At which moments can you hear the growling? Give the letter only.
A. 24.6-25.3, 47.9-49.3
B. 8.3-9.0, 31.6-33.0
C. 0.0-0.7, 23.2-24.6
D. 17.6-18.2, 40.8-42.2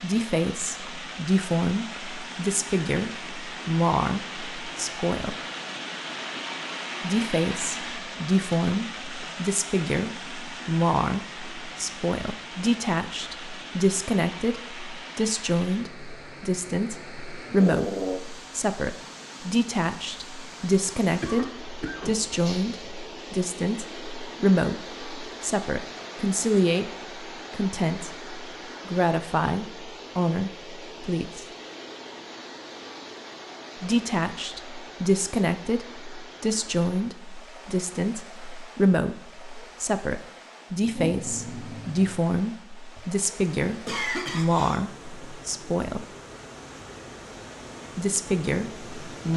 D.